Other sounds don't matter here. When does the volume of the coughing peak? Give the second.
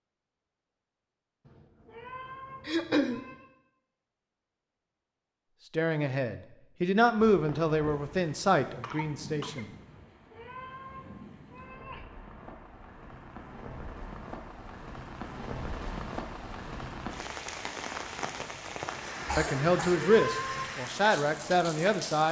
3 s.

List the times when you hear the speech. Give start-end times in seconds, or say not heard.
5.7-9.7, 19.4-22.2.